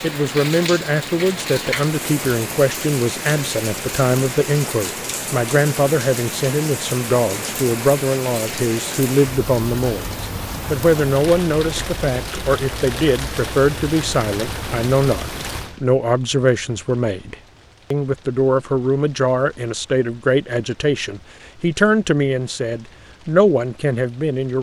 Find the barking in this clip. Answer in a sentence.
The barking can't be heard in this clip.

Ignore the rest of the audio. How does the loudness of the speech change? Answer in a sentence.
The volume of the speech stays about the same.